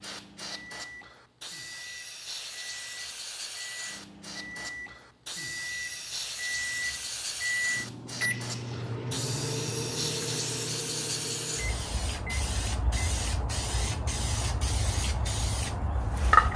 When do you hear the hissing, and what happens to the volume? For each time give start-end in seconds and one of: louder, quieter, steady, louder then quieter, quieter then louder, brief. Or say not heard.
0.0-16.5 louder.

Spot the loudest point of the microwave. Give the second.
8 s.